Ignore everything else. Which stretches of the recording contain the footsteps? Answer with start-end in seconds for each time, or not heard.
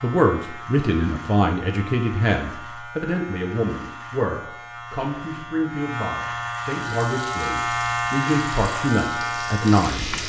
not heard.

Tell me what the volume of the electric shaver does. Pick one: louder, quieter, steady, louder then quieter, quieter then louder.
louder.